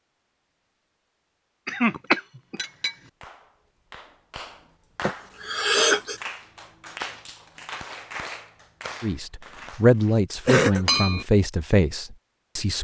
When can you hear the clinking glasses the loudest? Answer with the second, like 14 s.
11 s.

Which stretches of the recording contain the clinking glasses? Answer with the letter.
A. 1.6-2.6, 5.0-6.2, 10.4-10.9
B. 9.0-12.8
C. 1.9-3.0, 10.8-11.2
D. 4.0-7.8
C.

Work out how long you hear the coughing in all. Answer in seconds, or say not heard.
3 s.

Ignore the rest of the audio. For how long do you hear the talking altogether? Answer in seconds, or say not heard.
4 s.